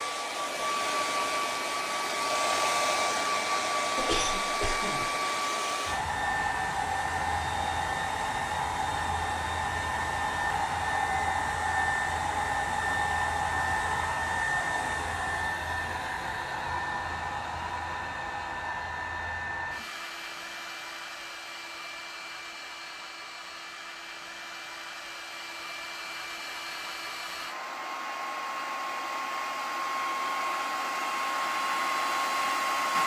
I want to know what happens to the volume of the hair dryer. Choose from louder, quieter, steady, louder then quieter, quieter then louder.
quieter then louder.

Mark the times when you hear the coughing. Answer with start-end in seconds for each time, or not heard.
4.0-5.1.